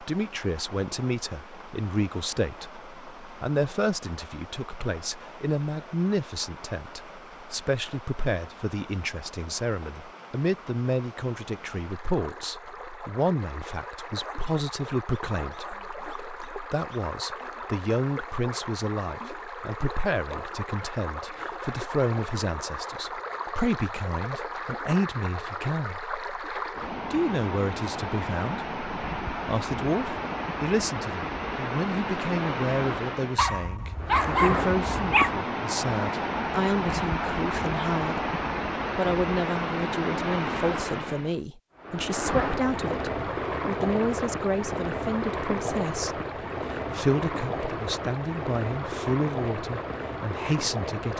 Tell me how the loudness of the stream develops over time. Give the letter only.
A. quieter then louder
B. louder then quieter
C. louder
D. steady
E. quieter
C.